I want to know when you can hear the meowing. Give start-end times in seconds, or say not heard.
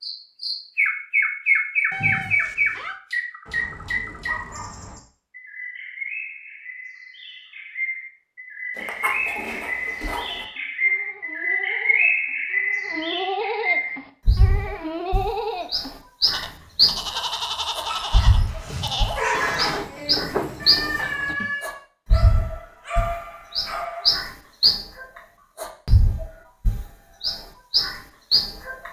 1.9-3.0, 20.6-21.9.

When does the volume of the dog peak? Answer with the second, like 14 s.
19 s.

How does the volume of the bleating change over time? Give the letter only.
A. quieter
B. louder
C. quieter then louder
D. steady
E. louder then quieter
B.